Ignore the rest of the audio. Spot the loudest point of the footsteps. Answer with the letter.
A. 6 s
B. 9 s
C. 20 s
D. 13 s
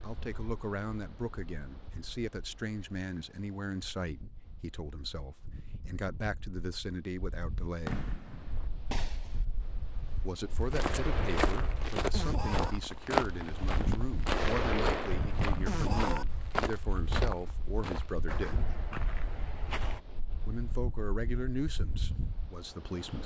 D.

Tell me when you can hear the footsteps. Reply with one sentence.
The footsteps can be heard from 10.6 to 20.0 s.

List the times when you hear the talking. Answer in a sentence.
You can hear the talking from 0.0 to 8.1 s, from 10.2 to 18.6 s and from 20.4 to 23.2 s.